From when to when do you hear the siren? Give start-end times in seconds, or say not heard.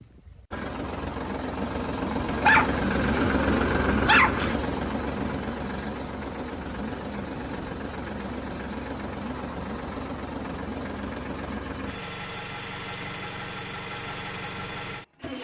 not heard.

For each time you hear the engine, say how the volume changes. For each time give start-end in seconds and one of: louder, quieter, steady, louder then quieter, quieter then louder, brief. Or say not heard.
0.0-15.3 quieter.